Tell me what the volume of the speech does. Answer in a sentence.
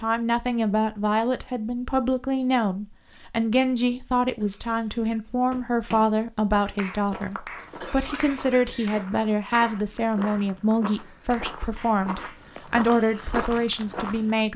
The loudness of the speech stays about the same.